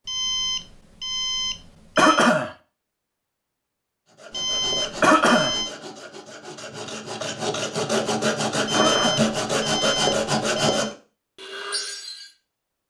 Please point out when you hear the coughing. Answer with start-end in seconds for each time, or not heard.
1.9-2.5, 5.0-5.5, 8.7-9.3.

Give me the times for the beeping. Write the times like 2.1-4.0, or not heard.
0.1-2.4, 4.3-5.8, 8.7-10.9.